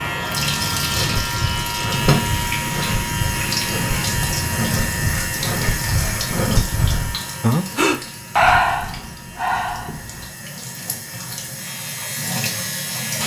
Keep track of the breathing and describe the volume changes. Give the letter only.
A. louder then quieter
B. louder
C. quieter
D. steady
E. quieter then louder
B.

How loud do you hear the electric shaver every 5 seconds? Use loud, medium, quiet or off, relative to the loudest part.
loud, medium, medium.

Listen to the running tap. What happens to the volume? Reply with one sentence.
The volume of the running tap goes down, then up.